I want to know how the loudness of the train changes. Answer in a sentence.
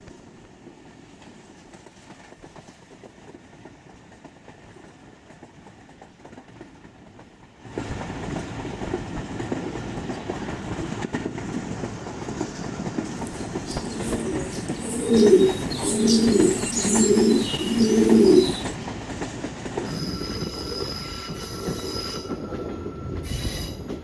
The loudness of the train goes up.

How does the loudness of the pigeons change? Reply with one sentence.
The volume of the pigeons goes up.